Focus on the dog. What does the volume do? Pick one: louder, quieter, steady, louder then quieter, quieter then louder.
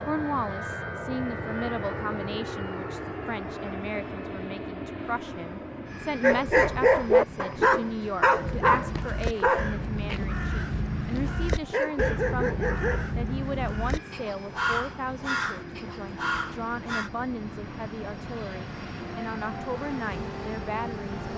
quieter then louder.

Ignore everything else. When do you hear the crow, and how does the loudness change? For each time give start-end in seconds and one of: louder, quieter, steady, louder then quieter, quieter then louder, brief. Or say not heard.
8.3-17.1 steady.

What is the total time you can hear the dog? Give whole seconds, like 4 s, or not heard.
7 s.